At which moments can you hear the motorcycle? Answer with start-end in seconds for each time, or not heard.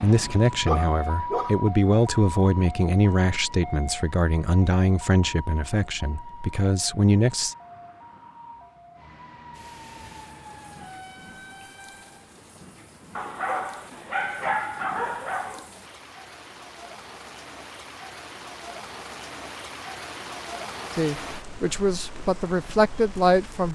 not heard.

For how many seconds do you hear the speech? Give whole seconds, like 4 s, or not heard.
10 s.